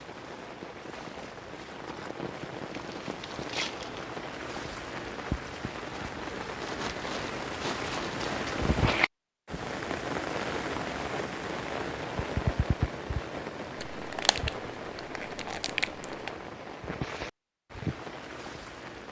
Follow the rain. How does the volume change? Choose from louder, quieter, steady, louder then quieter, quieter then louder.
louder then quieter.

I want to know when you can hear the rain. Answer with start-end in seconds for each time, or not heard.
0.0-19.0.